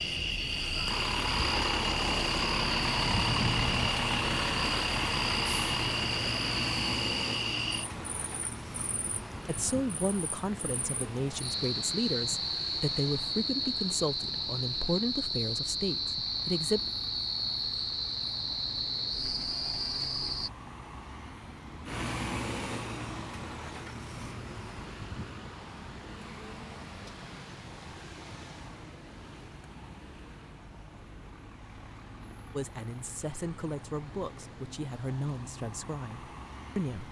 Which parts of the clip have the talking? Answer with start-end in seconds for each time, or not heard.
9.4-16.8, 32.5-37.0.